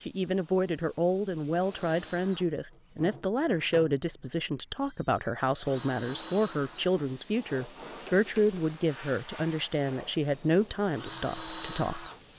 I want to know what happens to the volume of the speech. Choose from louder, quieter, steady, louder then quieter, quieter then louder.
steady.